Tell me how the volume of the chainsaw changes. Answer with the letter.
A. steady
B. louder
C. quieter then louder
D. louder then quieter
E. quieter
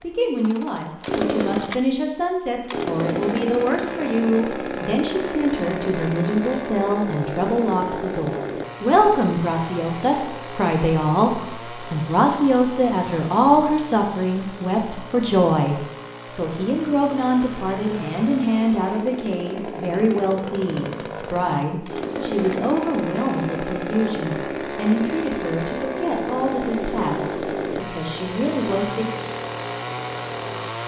C.